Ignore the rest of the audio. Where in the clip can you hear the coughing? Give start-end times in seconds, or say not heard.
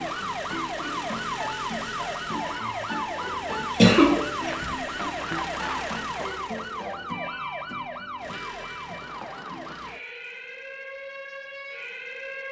3.5-4.7.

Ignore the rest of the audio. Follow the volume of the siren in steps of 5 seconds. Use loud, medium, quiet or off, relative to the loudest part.
loud, loud, medium.